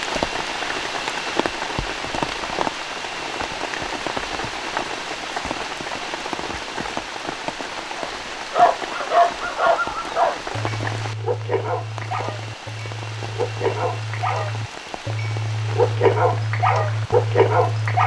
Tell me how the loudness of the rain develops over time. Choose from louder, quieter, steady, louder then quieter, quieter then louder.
quieter.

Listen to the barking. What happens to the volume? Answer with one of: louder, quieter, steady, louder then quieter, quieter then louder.
quieter then louder.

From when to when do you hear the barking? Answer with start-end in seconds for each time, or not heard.
8.0-18.0.